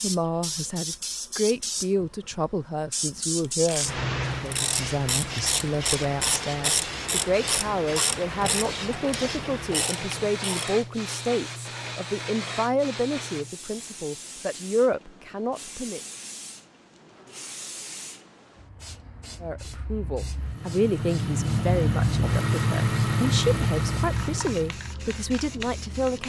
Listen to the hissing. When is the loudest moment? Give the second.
4 s.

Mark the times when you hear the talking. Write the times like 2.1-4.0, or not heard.
0.0-16.0, 19.4-26.2.